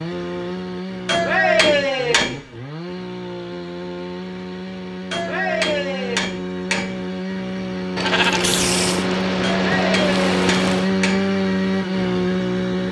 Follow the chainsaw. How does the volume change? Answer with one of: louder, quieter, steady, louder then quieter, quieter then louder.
louder.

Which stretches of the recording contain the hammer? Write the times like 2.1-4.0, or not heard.
1.1-2.4, 5.1-7.0, 9.4-11.3.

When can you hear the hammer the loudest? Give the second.
2 s.